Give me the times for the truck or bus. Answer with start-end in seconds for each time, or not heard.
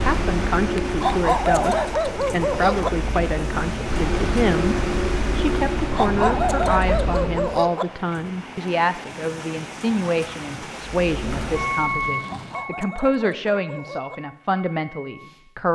0.0-7.8, 10.9-15.4.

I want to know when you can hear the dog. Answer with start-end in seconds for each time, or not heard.
1.0-2.9, 6.0-7.8, 12.2-14.2.